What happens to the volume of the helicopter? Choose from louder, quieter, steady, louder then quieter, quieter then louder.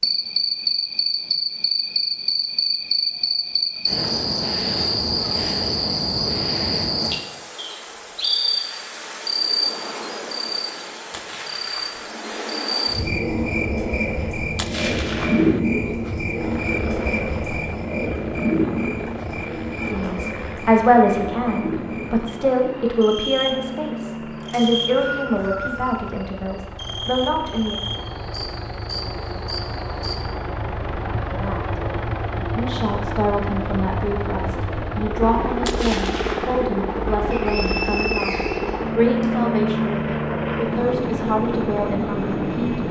louder.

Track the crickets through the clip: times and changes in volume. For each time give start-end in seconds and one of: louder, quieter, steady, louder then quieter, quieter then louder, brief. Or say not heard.
0.0-30.2 quieter.